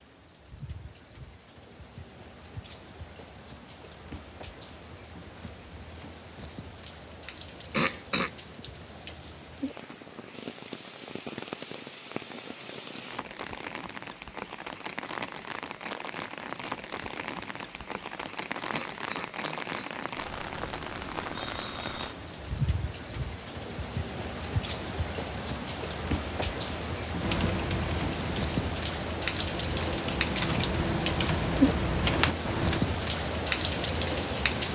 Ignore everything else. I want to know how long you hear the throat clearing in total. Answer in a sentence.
You can hear the throat clearing for 2 seconds altogether.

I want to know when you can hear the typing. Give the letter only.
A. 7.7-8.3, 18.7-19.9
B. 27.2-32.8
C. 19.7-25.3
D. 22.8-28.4
B.